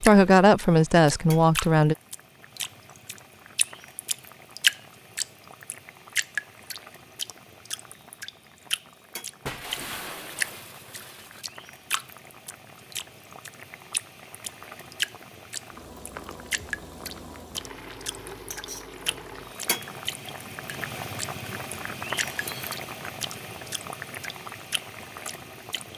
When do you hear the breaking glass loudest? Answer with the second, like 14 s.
10 s.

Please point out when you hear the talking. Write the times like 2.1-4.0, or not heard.
0.0-1.9.